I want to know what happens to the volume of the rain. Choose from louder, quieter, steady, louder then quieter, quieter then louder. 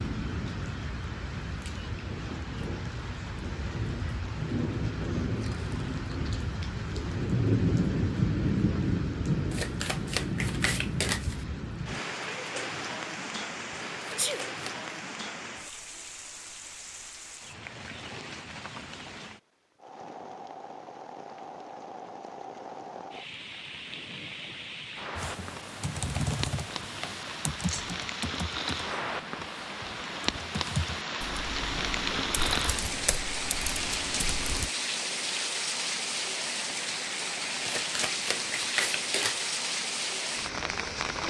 quieter then louder.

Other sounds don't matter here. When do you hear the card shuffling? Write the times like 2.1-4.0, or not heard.
9.5-11.4, 14.0-14.9, 37.6-39.5.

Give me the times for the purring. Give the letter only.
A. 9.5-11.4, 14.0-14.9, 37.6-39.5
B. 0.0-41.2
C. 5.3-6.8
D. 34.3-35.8
C.